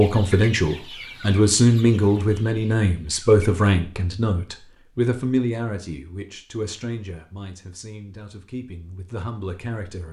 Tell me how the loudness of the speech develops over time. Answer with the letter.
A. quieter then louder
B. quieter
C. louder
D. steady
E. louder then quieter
B.